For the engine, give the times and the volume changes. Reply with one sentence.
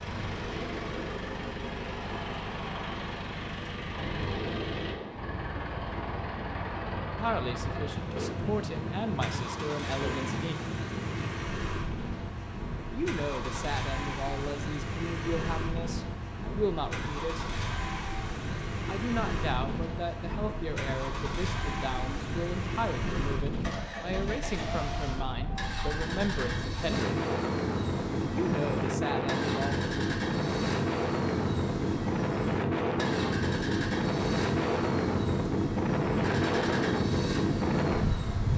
The engine can be heard from 0.0 to 38.5 s, at a steady volume.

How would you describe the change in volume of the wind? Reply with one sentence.
The loudness of the wind goes up.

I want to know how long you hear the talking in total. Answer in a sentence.
The talking can be heard for 18 seconds in total.